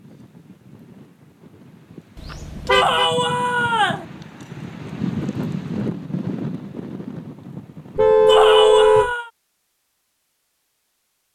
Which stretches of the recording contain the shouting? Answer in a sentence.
You can hear the shouting from 2.7 to 4.0 s and from 8.2 to 9.3 s.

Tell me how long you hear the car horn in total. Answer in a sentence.
The car horn can be heard for 2 seconds in total.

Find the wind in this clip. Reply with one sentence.
The wind can be heard from 0.0 to 8.4 s.